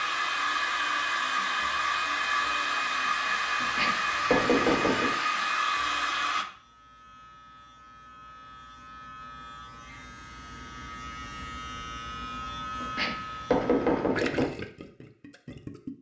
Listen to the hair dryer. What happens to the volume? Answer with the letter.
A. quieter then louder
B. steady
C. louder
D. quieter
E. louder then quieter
B.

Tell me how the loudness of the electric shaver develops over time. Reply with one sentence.
The volume of the electric shaver goes up.